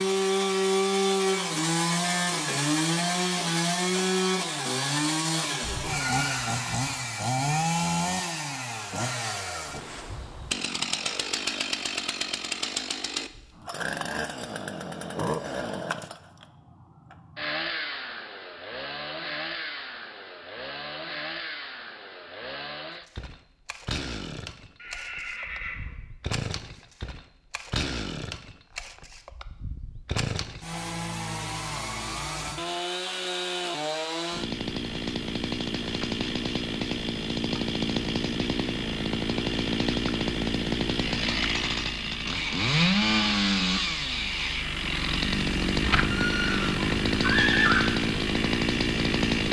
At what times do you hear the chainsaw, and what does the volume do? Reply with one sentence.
You can hear the chainsaw from 0.0 to 49.4 s, getting quieter then louder.